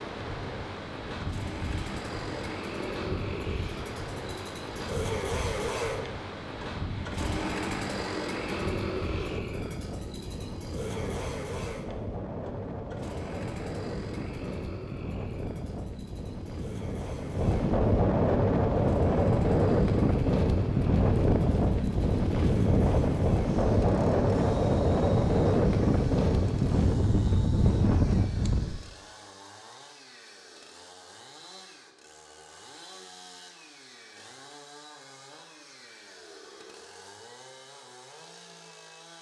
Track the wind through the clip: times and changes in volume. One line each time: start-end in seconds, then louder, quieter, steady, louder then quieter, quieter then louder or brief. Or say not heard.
0.0-28.8 louder.